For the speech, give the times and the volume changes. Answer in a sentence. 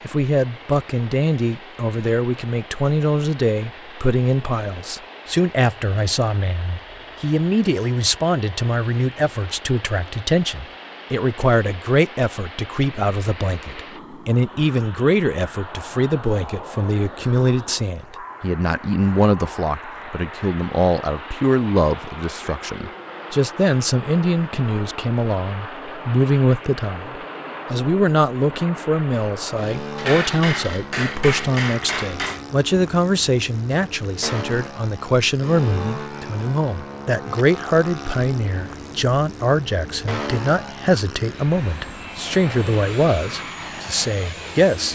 You can hear the speech from 0.0 to 44.9 s, at a steady volume.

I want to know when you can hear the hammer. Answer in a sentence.
The hammer can be heard from 29.9 to 32.4 s.